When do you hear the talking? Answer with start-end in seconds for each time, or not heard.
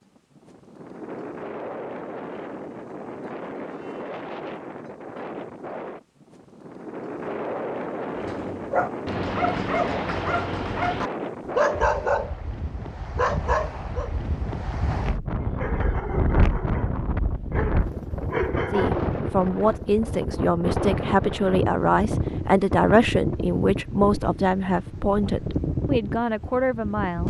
18.7-27.2.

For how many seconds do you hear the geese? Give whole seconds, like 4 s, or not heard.
not heard.